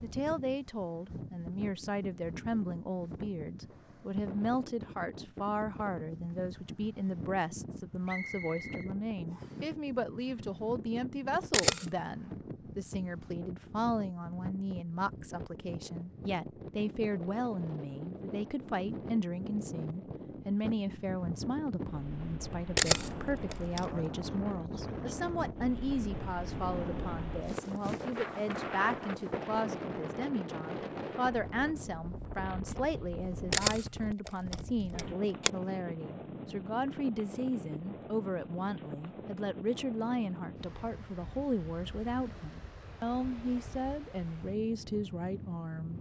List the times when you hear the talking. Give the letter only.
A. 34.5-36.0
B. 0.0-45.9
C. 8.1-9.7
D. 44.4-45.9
B.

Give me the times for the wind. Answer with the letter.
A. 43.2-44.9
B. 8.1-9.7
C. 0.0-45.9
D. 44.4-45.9
C.